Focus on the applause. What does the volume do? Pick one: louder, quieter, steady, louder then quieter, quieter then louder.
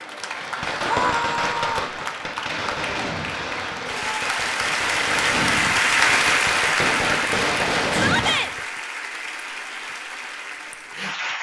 louder then quieter.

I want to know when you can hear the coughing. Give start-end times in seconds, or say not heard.
not heard.